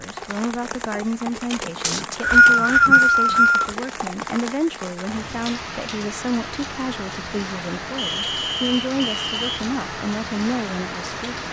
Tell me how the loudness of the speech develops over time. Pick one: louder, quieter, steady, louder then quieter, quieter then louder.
steady.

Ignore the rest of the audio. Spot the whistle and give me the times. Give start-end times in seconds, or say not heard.
1.8-3.8, 8.0-9.6.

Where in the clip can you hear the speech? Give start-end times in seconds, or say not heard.
0.0-11.4.